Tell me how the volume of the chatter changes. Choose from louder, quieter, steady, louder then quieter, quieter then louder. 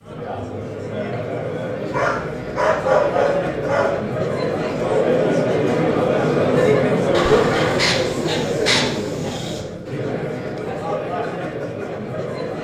louder then quieter.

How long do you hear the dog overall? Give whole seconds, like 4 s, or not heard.
5 s.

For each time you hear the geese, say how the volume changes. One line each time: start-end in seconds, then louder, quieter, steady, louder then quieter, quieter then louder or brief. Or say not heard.
not heard.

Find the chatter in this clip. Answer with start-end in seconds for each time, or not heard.
0.0-12.5.